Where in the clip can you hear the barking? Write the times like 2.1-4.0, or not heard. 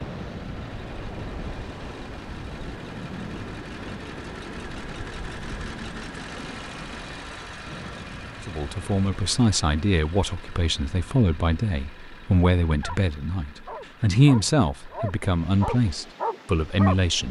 12.7-16.9.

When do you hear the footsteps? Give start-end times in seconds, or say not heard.
not heard.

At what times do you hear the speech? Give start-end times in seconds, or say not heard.
8.4-17.2.